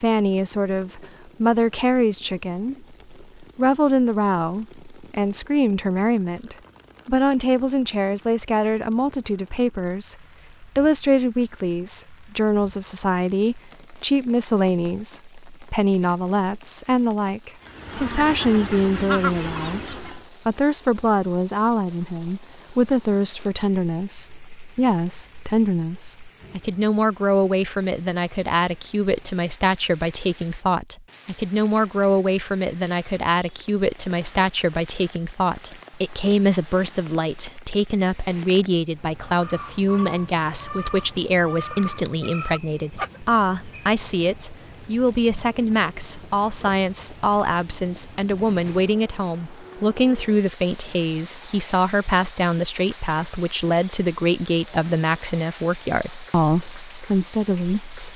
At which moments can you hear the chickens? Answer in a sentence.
You can hear the chickens from 17.6 to 20.2 s and from 39.2 to 43.4 s.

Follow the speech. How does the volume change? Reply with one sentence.
The loudness of the speech stays about the same.